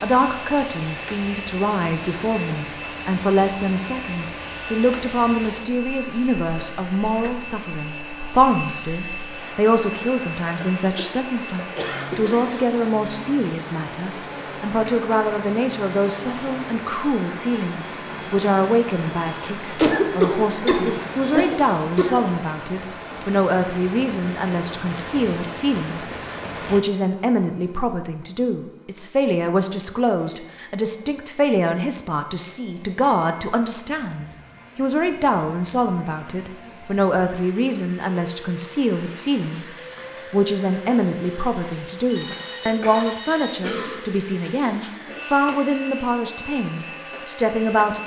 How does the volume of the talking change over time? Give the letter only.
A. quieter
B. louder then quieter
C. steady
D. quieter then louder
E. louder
C.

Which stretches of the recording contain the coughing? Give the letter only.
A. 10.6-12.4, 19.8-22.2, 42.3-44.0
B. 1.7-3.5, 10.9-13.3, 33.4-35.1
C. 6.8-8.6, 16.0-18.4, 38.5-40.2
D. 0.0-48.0
A.